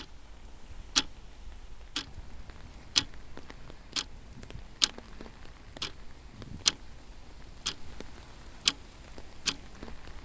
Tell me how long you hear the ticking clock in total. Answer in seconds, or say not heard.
10 s.